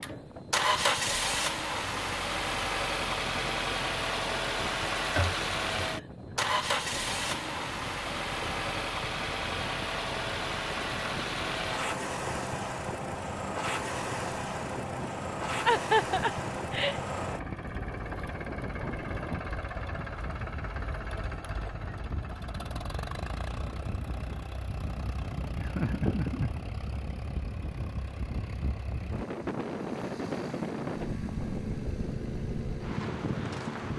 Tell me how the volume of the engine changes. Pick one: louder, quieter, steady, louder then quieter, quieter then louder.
quieter.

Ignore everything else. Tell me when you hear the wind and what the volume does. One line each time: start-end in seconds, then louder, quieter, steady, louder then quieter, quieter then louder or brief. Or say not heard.
0.0-33.9 louder.